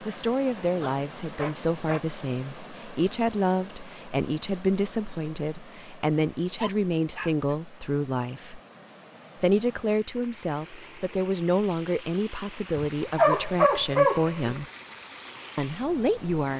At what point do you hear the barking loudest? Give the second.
13 s.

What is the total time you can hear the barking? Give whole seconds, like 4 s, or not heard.
4 s.